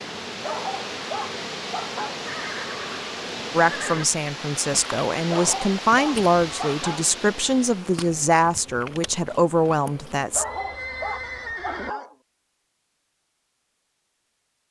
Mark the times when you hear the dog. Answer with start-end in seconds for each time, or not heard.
0.4-2.2, 5.3-7.1, 10.3-12.2.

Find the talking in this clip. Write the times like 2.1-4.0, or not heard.
3.5-10.4.